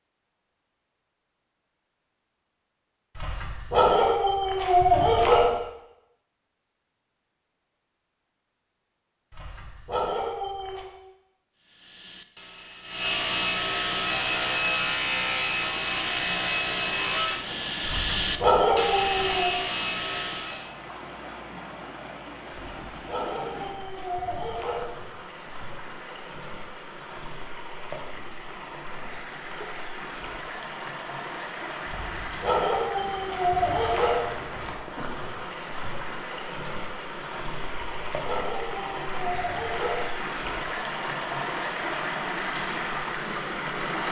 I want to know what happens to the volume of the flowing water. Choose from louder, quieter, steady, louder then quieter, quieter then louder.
louder.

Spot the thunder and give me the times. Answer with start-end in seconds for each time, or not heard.
not heard.